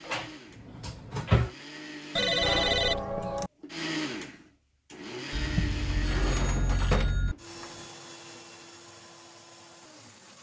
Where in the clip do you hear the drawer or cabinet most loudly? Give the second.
1 s.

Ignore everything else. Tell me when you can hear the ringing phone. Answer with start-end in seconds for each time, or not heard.
2.1-3.5, 5.3-7.3.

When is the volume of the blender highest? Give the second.
4 s.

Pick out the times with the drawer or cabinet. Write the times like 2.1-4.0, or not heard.
0.1-1.5, 5.9-7.8.